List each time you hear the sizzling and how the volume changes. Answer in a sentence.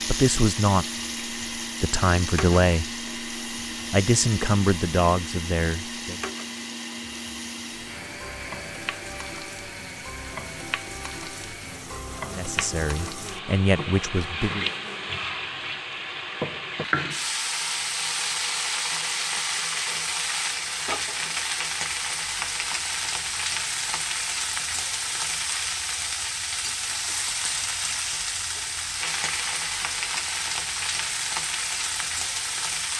You can hear the sizzling from 0.0 to 32.9 s, getting louder.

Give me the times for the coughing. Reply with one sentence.
You can't hear the coughing here.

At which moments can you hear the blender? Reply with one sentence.
You can hear the blender from 0.0 to 15.4 s.